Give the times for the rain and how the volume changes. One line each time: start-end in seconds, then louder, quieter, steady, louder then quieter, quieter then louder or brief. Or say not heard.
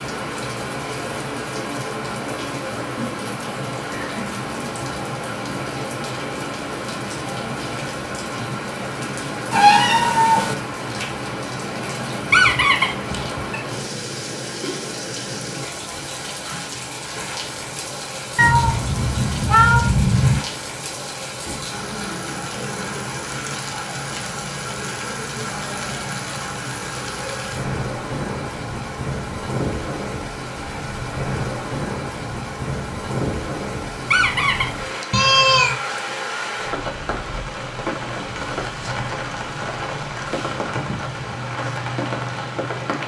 0.0-43.0 steady.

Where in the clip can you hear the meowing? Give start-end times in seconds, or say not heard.
9.5-10.6, 18.4-20.4, 35.1-35.8.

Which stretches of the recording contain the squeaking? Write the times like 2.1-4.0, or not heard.
12.3-13.3, 34.0-34.7.